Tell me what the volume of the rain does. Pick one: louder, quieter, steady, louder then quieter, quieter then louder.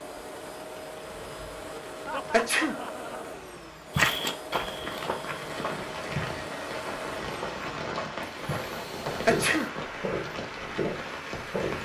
louder.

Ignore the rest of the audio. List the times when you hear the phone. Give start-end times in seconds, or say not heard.
not heard.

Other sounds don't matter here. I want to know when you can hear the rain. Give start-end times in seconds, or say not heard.
0.0-11.8.